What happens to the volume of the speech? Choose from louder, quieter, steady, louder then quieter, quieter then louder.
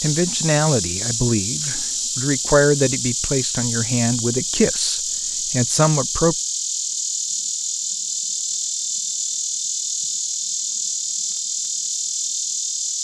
steady.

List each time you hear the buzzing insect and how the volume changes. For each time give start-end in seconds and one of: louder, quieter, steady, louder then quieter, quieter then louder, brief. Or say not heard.
0.0-12.9 steady.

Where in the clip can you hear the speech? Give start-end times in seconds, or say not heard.
0.0-6.3.